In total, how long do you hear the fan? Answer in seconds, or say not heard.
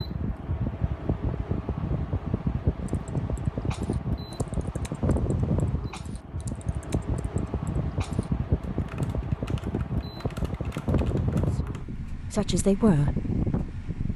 14 s.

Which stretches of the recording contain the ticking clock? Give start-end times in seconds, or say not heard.
not heard.